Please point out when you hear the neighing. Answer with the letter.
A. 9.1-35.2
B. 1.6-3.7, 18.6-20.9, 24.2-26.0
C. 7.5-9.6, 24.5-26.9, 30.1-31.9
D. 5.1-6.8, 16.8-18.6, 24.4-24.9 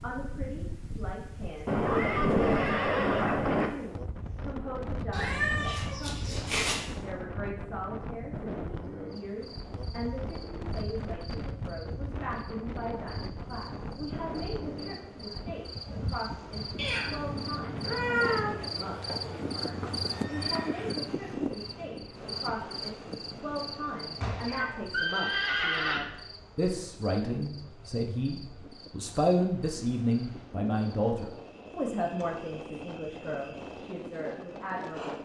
B.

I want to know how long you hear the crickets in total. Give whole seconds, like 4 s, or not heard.
26 s.